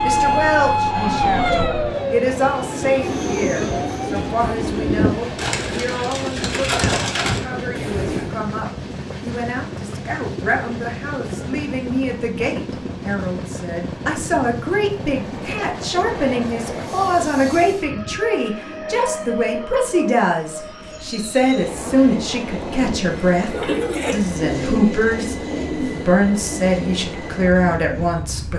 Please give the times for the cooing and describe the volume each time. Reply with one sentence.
You can hear the cooing from 2.6 to 8.4 s, at a steady volume; and from 23.5 to 28.2 s, getting quieter.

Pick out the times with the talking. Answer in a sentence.
The talking can be heard from 0.0 to 28.5 s.